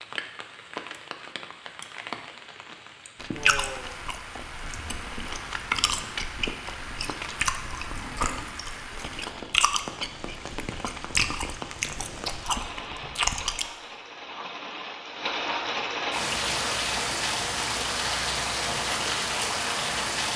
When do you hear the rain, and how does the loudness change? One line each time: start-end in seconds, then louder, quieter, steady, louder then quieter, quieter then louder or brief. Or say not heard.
0.0-20.3 louder.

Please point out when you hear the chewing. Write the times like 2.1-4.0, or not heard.
3.1-13.7.